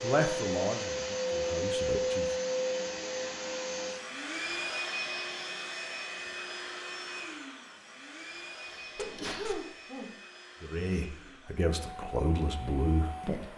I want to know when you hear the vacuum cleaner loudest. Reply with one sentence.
The volume of the vacuum cleaner peaks at 2 seconds.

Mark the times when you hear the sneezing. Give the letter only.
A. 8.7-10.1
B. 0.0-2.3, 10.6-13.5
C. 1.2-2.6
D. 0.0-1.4
A.